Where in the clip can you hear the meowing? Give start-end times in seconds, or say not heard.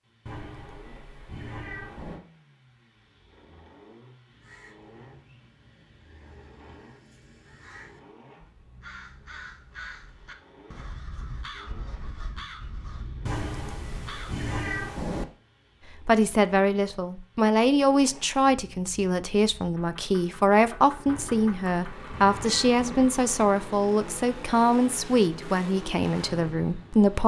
0.2-2.2, 13.2-15.2, 21.1-23.1.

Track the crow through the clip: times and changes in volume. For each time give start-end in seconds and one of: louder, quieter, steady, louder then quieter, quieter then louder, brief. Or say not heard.
4.2-14.4 louder.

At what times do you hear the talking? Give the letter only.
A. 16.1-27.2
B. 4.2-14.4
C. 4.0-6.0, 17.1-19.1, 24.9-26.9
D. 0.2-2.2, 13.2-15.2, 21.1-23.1
A.